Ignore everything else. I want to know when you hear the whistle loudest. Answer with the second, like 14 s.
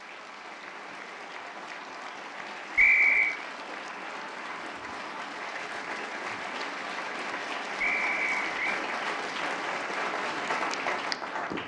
3 s.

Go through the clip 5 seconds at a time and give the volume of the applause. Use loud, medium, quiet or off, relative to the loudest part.
medium, loud, loud.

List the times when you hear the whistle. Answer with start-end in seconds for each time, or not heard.
2.8-3.4, 7.8-8.8.